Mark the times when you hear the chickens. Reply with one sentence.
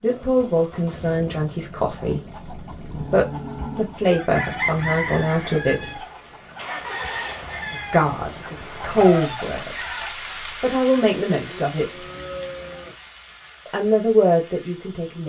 The chickens can be heard from 1.9 to 10.2 s.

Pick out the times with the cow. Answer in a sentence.
You can hear the cow from 2.1 to 4.0 s and from 11.3 to 12.9 s.